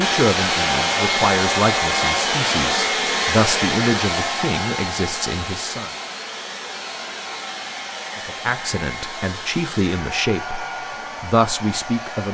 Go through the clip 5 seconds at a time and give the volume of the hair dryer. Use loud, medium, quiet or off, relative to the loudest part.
loud, medium, medium.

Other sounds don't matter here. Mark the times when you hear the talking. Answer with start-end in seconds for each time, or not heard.
0.0-5.9, 8.2-12.2.